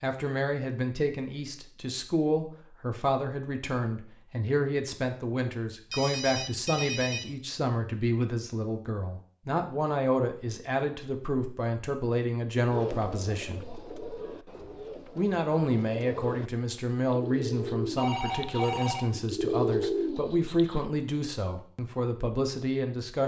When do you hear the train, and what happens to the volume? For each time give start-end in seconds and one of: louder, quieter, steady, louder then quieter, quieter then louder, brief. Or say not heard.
not heard.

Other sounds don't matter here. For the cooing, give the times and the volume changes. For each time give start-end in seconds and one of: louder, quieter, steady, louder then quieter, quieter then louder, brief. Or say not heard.
12.7-20.9 louder.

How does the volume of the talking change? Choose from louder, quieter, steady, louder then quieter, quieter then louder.
steady.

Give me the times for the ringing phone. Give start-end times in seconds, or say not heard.
5.9-7.3, 17.9-19.1.